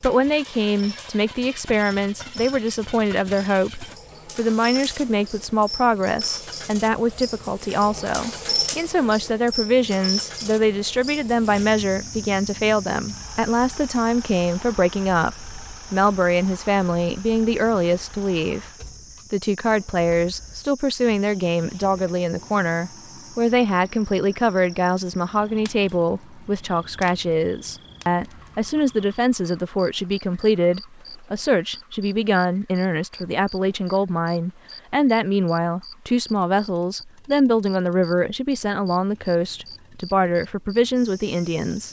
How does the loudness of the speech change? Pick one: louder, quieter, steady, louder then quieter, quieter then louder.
steady.